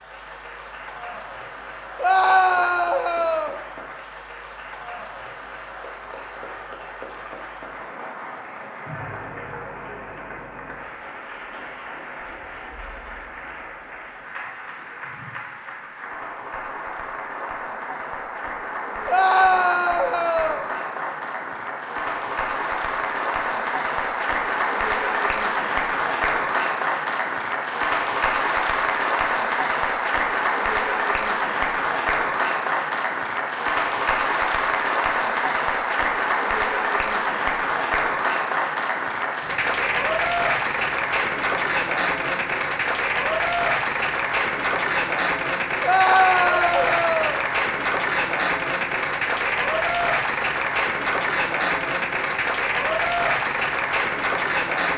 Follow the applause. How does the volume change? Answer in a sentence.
The loudness of the applause goes up.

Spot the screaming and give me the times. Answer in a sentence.
You can hear the screaming from 2.0 to 3.6 s, from 19.1 to 20.6 s and from 45.8 to 47.4 s.